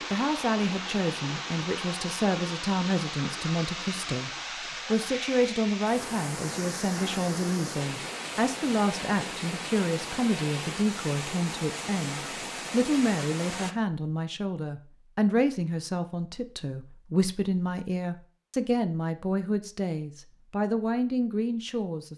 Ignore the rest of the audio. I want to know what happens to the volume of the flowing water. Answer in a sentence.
The loudness of the flowing water stays about the same.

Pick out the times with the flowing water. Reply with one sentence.
You can hear the flowing water from 0.0 to 13.8 s.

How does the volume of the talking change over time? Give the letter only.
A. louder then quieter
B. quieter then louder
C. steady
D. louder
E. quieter
C.